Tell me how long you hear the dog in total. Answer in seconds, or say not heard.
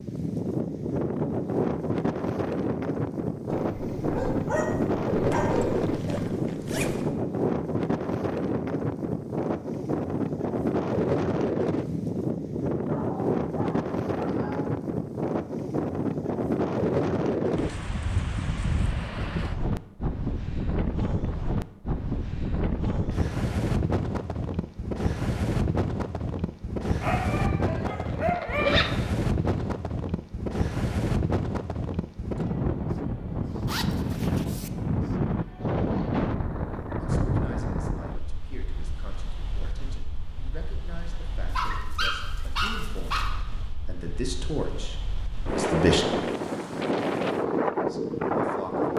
8 s.